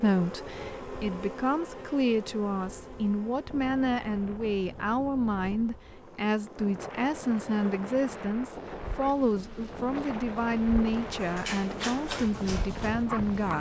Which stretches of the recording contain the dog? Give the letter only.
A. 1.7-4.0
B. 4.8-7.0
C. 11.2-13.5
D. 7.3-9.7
C.